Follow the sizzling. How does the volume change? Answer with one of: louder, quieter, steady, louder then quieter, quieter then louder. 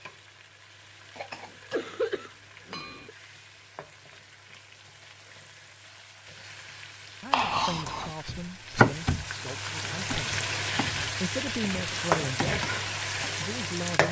louder.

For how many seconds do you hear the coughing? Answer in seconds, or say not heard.
2 s.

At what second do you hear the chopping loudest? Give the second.
9 s.